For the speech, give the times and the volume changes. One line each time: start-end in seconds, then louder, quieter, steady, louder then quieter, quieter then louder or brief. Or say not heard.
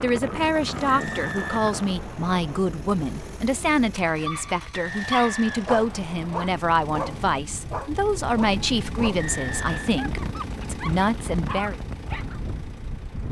0.0-11.8 steady.